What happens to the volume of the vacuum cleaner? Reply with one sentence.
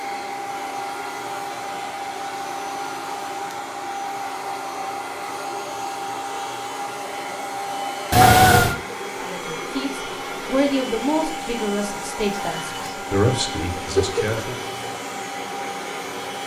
The loudness of the vacuum cleaner stays about the same.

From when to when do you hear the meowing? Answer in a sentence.
You can hear the meowing from 8.1 to 8.8 s and from 13.8 to 14.9 s.